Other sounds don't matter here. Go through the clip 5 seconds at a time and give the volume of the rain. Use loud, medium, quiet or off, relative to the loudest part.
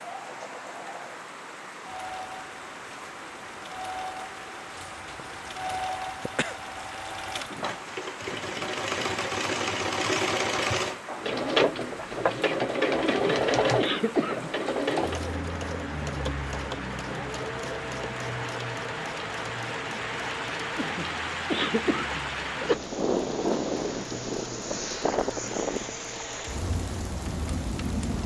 medium, medium, medium, medium, loud, loud.